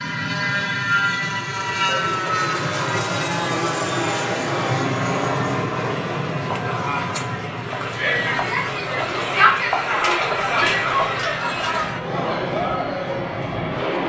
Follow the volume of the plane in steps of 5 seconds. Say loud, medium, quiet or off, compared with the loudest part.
loud, medium, medium.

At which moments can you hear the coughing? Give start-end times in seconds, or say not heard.
not heard.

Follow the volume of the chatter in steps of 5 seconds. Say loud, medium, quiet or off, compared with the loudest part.
off, loud, loud.